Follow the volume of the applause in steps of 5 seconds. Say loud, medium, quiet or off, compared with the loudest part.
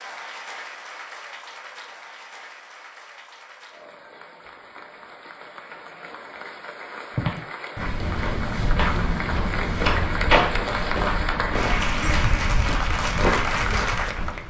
quiet, medium, loud.